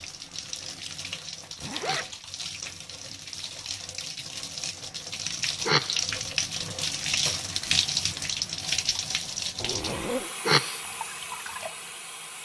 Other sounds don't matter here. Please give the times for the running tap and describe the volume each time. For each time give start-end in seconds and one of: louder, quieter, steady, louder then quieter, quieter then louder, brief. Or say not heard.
0.0-12.4 louder then quieter.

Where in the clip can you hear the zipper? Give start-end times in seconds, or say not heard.
1.6-2.0, 9.6-10.3.